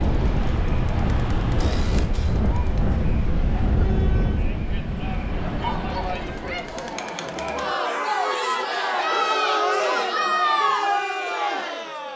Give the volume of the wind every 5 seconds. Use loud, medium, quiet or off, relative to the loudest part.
loud, medium, off.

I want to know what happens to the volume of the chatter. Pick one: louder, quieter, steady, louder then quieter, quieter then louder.
louder.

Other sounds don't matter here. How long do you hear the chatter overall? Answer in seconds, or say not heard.
12 s.